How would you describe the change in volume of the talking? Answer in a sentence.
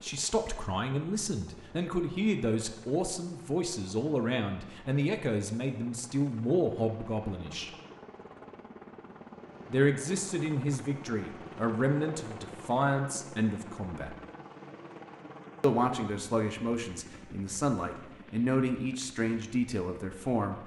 The volume of the talking stays about the same.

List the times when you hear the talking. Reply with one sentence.
You can hear the talking from 0.0 to 7.7 s, from 9.7 to 14.2 s and from 15.6 to 20.6 s.